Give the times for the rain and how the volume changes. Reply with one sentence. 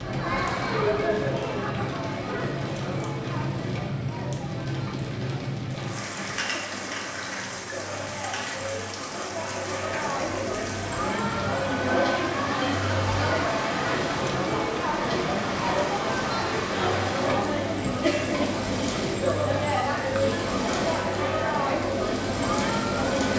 The rain can be heard from 0.0 to 23.3 s, at a steady volume.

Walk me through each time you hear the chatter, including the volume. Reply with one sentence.
The chatter can be heard from 0.0 to 23.3 s, getting quieter then louder.